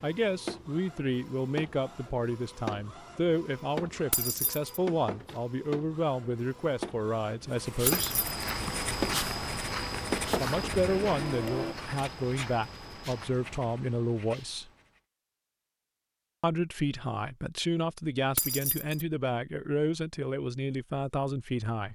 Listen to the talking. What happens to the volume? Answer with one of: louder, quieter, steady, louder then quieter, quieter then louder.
steady.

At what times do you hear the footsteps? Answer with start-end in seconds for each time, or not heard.
7.9-13.3.